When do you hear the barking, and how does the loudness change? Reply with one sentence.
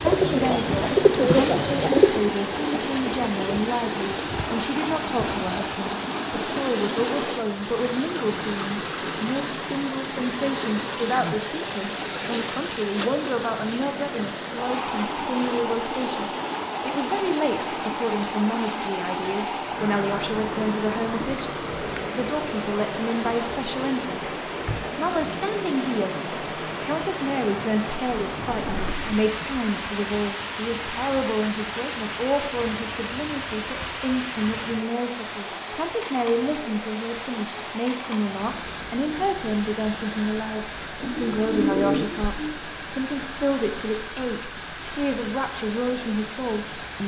The barking can't be heard in this clip.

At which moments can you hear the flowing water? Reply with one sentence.
The flowing water can be heard from 0.0 to 47.0 s.